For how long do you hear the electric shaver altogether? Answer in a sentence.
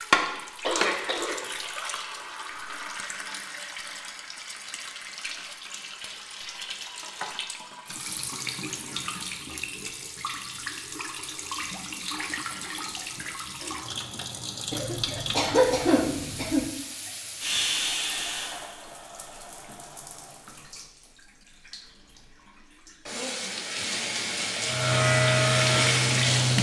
You can hear the electric shaver for 2 seconds altogether.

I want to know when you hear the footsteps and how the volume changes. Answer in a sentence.
The footsteps can't be heard in this clip.